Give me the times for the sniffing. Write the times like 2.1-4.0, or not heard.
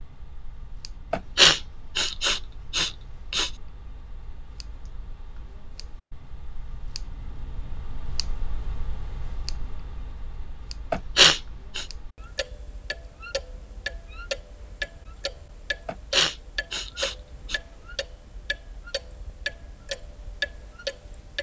1.1-3.5, 10.9-11.8, 15.8-17.6.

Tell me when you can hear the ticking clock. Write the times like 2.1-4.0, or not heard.
0.0-21.3.